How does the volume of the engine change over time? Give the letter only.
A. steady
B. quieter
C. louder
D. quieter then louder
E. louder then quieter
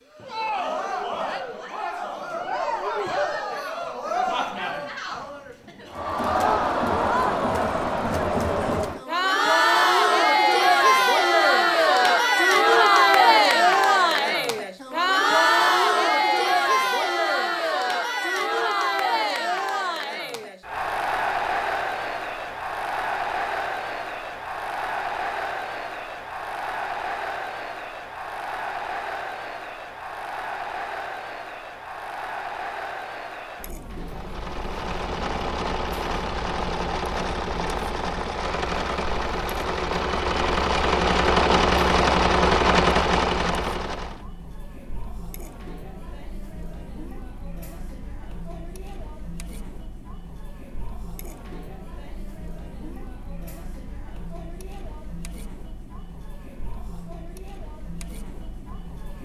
C.